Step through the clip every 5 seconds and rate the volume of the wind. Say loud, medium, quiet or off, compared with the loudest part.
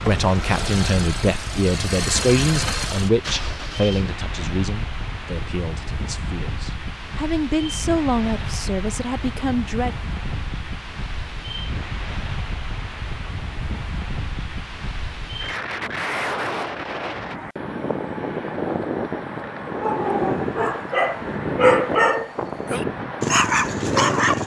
medium, medium, medium, loud, loud.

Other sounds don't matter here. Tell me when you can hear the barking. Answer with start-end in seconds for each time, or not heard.
19.6-24.4.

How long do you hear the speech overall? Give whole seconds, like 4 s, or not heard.
10 s.